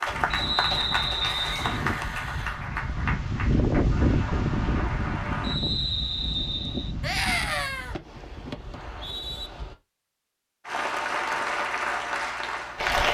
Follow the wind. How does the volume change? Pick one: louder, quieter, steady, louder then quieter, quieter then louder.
louder then quieter.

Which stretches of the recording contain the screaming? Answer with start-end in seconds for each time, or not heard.
1.2-2.6, 7.0-8.0.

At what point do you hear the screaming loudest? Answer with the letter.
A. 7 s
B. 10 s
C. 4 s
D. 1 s
A.